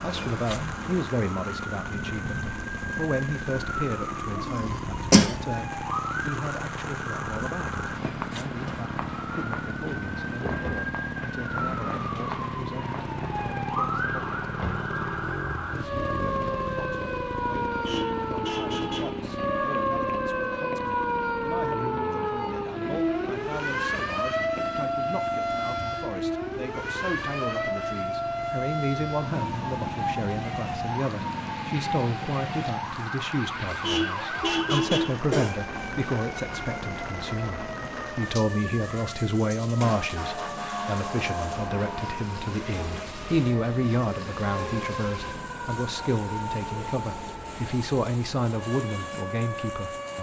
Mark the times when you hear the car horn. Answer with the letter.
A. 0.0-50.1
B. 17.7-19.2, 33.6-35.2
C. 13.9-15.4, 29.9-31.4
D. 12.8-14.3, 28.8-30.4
B.